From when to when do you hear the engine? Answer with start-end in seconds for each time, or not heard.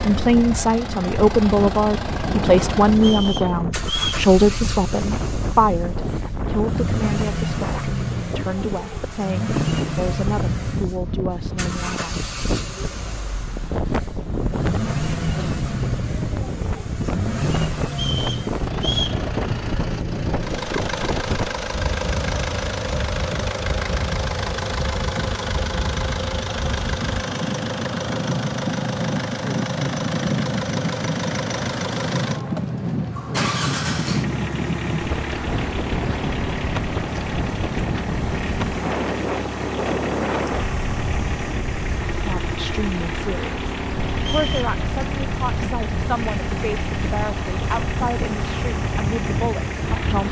0.0-50.2.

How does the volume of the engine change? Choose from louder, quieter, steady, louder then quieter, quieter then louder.
steady.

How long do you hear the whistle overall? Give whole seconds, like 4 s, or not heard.
3 s.